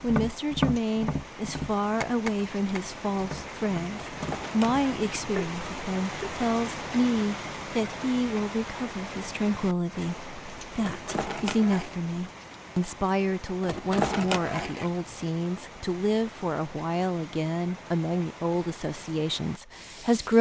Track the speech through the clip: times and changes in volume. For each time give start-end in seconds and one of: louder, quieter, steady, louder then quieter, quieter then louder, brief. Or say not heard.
0.0-20.3 steady.